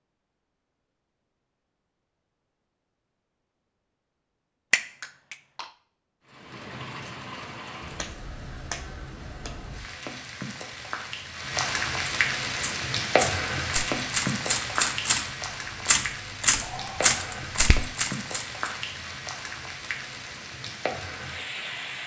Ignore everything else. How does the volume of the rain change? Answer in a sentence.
The volume of the rain goes up, then down.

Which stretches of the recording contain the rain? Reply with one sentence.
You can hear the rain from 6.2 to 22.0 s.